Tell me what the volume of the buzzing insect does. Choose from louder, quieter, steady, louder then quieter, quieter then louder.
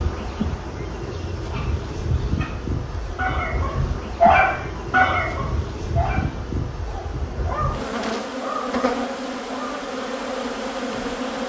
steady.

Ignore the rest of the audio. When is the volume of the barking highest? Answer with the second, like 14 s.
4 s.